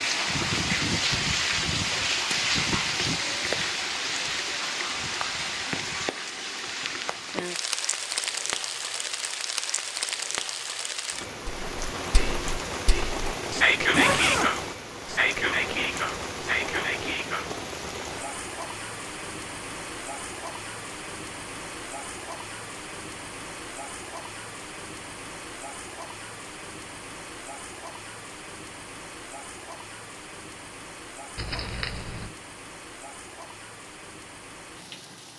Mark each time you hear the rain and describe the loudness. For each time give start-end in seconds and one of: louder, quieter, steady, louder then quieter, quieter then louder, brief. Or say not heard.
0.0-35.3 quieter.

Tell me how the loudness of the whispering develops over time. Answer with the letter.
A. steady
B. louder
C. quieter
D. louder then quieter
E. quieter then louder
D.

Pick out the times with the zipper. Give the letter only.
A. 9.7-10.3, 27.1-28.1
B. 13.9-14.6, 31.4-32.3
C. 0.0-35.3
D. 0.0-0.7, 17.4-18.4
B.